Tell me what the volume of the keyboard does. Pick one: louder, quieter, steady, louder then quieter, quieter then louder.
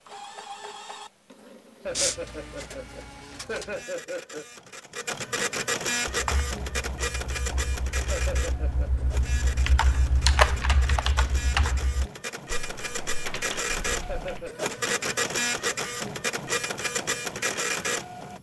louder then quieter.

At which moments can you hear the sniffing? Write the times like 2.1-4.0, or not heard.
1.9-2.6.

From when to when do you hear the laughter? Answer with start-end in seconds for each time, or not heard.
1.8-4.5, 8.1-9.1, 14.1-14.7.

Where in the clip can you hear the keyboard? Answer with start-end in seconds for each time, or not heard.
6.0-14.5.